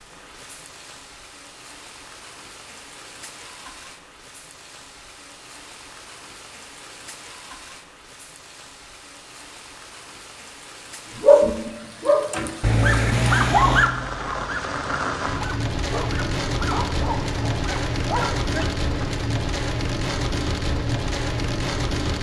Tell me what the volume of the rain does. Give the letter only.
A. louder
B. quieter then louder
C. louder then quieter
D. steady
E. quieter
A.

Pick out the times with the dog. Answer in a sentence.
You can hear the dog from 11.2 to 19.1 s.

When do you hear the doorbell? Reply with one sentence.
You can't hear the doorbell here.